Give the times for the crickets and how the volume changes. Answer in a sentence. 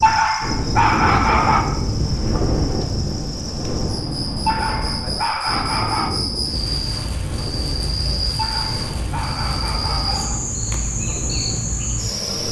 The crickets can be heard from 0.0 to 12.4 s, getting louder.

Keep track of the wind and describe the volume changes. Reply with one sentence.
The volume of the wind goes down.